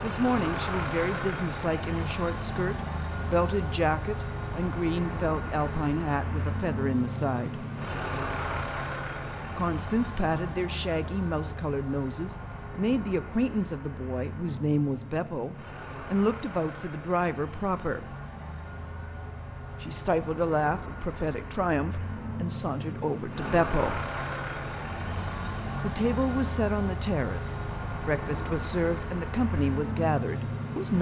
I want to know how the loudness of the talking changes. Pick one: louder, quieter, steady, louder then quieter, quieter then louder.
steady.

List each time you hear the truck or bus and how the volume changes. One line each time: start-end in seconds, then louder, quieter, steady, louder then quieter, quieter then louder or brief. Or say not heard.
0.0-30.9 quieter then louder.